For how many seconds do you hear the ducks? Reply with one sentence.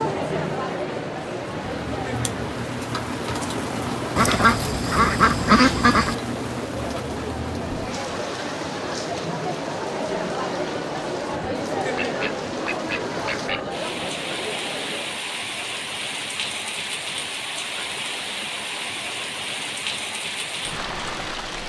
You can hear the ducks for 4 seconds altogether.